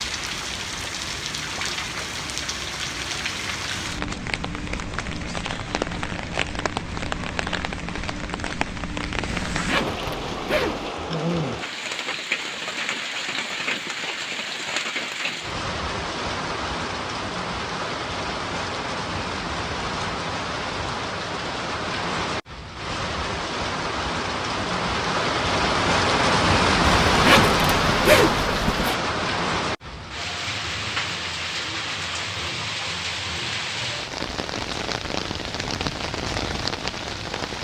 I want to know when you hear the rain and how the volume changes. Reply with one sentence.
The rain can be heard from 0.0 to 37.5 s, getting louder then quieter.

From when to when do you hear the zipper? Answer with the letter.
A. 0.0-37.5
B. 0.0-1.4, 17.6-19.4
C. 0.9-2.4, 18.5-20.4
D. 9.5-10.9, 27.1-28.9
D.